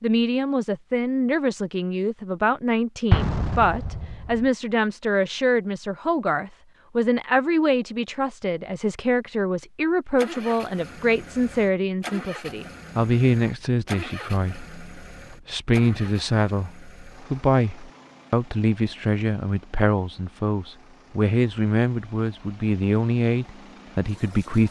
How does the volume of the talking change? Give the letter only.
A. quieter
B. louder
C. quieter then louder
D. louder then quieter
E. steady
E.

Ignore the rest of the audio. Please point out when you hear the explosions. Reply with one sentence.
The explosions can be heard from 3.1 to 4.5 s.